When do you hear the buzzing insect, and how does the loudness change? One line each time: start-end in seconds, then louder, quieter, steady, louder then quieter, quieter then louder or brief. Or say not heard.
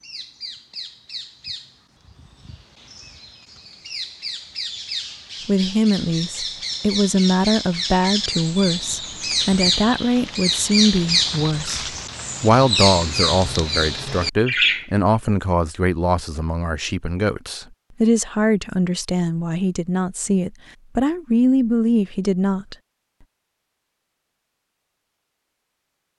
not heard.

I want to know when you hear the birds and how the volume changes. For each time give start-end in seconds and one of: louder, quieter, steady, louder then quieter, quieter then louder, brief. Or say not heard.
0.0-14.8 louder.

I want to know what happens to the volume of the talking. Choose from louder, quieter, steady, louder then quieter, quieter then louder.
steady.